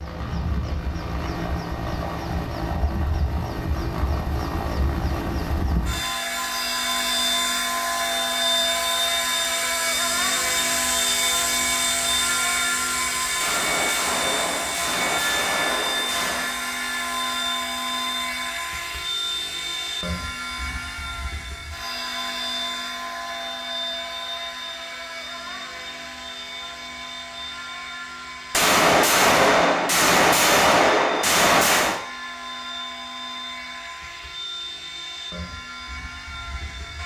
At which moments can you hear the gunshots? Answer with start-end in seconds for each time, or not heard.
13.4-16.6, 28.5-32.0.